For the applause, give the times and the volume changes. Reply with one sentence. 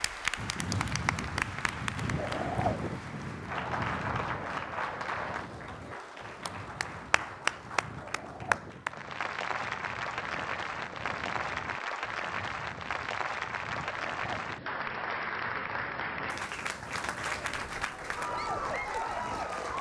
The applause can be heard from 0.0 to 19.7 s, at a steady volume.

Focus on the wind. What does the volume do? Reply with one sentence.
The loudness of the wind goes down.